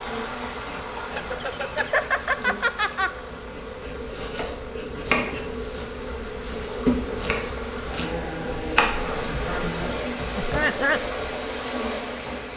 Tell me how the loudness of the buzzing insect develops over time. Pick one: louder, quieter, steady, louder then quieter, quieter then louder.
louder then quieter.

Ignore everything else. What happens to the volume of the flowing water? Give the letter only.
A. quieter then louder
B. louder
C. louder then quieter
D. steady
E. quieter
A.